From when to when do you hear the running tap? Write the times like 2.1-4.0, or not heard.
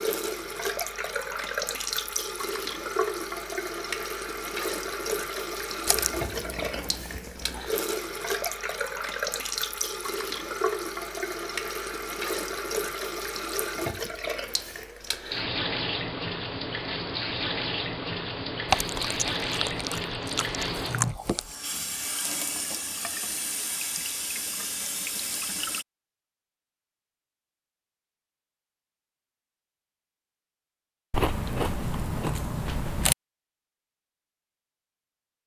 0.0-25.9.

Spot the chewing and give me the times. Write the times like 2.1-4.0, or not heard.
5.8-7.8, 18.6-21.6, 31.1-33.1.